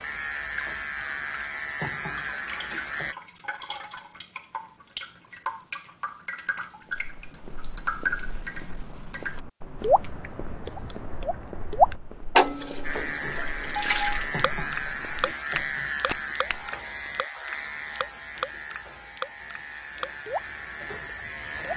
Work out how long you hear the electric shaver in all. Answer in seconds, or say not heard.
12 s.